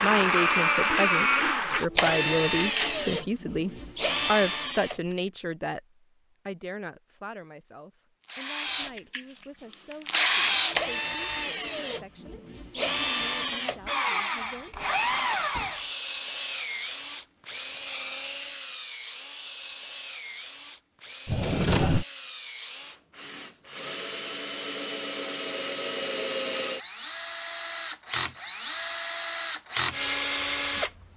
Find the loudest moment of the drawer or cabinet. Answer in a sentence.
The loudest moment of the drawer or cabinet is at 22 seconds.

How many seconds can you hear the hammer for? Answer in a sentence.
You can't hear the hammer here.